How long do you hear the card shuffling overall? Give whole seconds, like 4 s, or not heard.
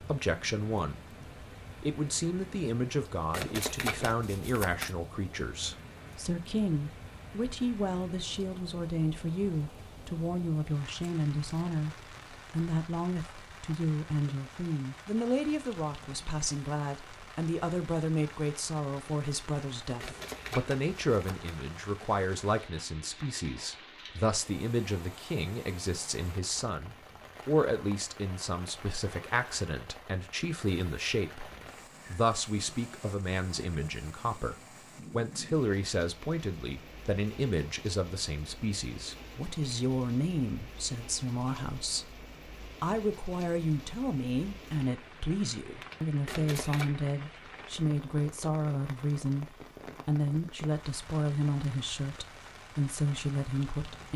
4 s.